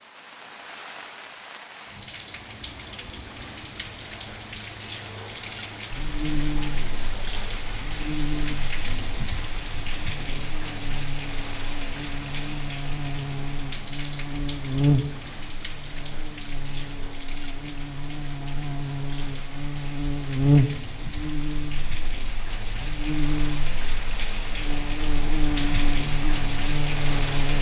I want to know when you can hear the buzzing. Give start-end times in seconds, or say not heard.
5.9-27.5.